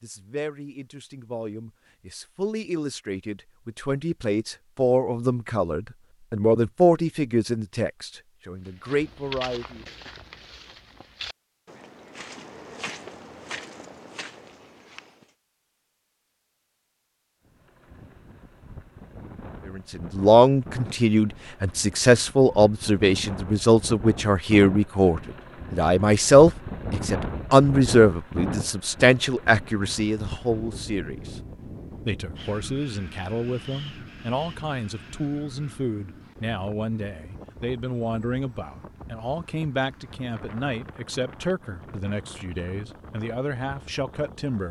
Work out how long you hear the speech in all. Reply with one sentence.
You can hear the speech for 34 seconds altogether.